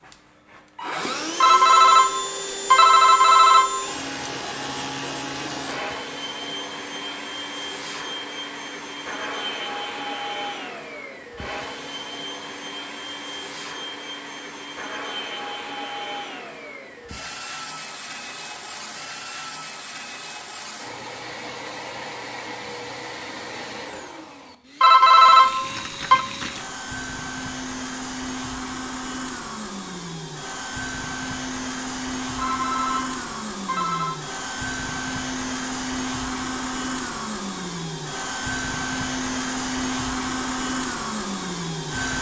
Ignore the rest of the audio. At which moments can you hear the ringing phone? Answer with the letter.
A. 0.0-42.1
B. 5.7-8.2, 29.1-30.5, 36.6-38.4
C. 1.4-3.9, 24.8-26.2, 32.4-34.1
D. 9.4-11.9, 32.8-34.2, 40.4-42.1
C.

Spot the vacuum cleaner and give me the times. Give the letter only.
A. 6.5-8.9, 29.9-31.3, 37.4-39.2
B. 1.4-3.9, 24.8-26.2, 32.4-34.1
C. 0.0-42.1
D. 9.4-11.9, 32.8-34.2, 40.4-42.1
C.